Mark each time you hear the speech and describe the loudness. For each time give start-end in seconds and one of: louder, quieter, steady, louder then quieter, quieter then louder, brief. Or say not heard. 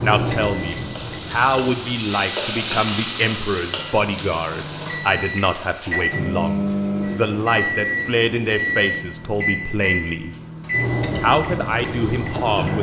0.0-10.3 steady
11.2-12.7 brief.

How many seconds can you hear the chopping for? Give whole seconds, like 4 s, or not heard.
not heard.